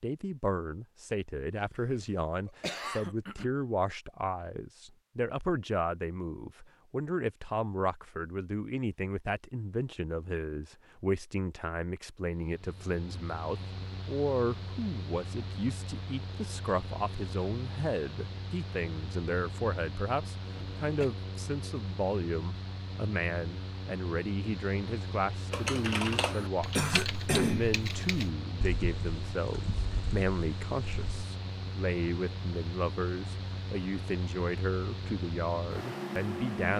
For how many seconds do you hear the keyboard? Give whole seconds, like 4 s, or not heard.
6 s.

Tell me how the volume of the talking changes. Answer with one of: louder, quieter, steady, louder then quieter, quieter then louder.
steady.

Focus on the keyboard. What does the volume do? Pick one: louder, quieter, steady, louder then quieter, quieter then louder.
quieter.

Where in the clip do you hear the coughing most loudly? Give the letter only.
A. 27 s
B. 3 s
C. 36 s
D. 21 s
A.